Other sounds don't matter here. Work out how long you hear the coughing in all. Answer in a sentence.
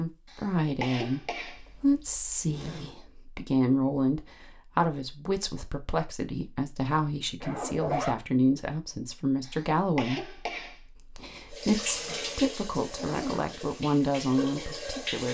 You can hear the coughing for 3 seconds altogether.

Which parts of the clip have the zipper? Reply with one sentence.
You can hear the zipper from 1.6 to 3.0 s, from 7.4 to 8.2 s and from 12.9 to 13.7 s.